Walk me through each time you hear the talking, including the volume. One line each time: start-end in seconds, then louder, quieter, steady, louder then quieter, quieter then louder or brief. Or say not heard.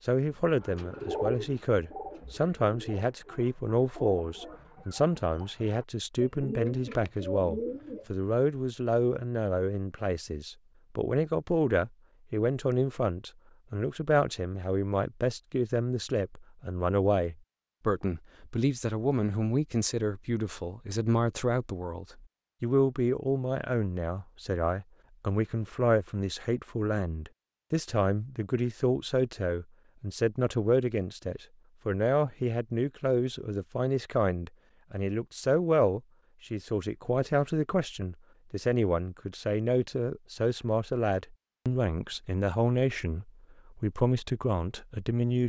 0.1-45.4 steady.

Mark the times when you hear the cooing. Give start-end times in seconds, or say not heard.
0.5-8.1.